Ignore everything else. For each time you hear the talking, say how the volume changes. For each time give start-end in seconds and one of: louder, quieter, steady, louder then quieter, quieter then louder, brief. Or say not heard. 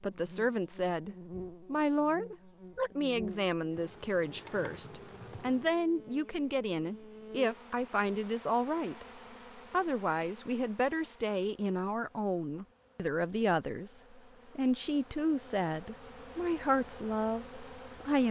0.0-18.2 steady.